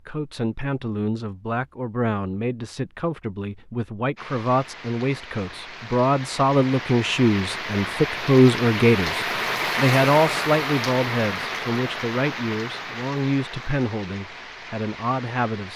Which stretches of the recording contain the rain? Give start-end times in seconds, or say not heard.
4.2-15.7.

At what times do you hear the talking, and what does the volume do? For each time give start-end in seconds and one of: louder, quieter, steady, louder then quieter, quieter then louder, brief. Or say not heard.
0.1-15.7 louder then quieter.